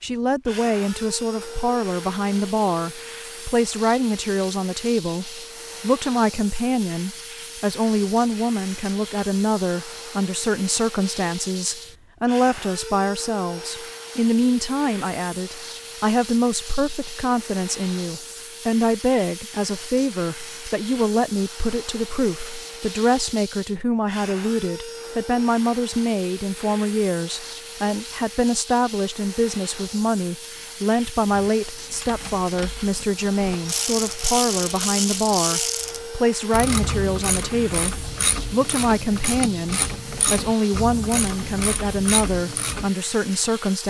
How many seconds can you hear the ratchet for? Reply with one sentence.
The ratchet can be heard for 12 seconds in total.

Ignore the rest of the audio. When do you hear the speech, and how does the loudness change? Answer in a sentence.
The speech can be heard from 0.0 to 43.8 s, at a steady volume.